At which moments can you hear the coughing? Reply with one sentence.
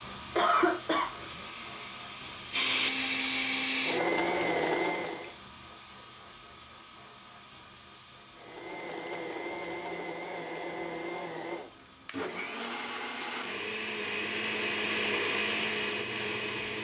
The coughing can be heard from 0.3 to 1.1 s.